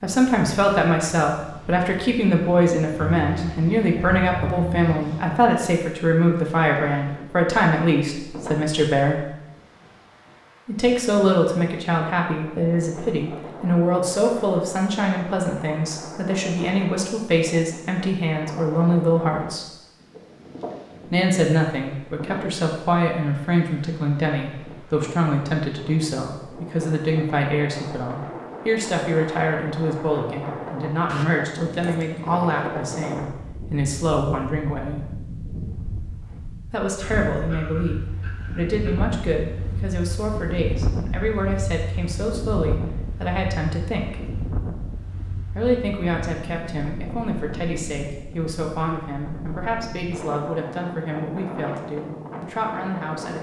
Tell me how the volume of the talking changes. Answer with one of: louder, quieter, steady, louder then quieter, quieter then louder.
quieter.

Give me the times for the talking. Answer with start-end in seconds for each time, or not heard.
0.0-9.2, 10.7-19.6, 21.1-35.1, 36.7-44.3, 45.5-53.3.